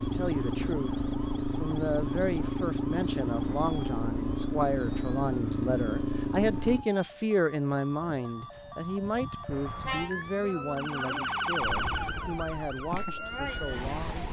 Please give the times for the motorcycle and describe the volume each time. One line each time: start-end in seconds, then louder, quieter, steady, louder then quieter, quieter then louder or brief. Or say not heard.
0.0-6.8 steady
11.6-14.2 brief.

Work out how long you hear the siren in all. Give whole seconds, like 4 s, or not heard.
14 s.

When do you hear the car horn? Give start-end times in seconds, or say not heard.
9.5-10.1.